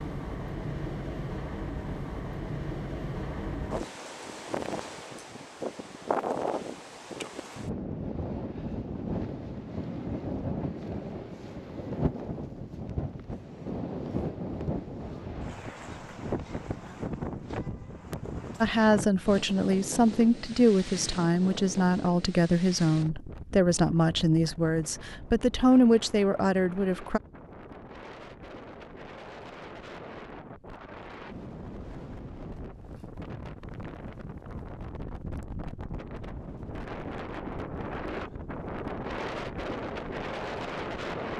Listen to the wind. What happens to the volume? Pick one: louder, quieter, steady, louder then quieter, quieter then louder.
quieter then louder.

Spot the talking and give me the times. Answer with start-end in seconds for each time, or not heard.
18.6-27.2.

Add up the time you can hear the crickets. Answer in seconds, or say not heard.
not heard.